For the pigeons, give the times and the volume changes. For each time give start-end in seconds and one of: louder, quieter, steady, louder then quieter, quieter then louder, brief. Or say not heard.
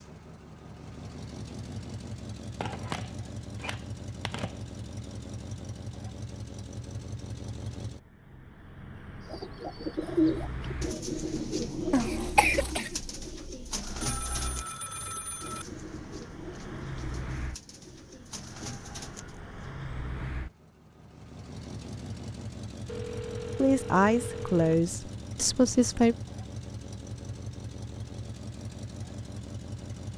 9.2-19.8 quieter.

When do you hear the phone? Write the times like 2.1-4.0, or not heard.
2.6-4.6, 14.0-15.7, 22.9-24.8.